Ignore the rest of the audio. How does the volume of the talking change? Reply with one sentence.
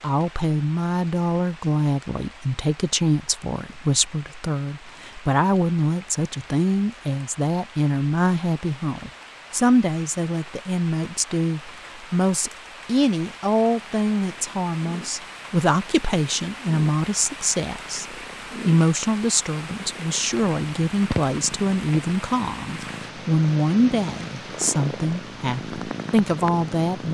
The loudness of the talking stays about the same.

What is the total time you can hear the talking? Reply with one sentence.
The talking can be heard for 27 seconds in total.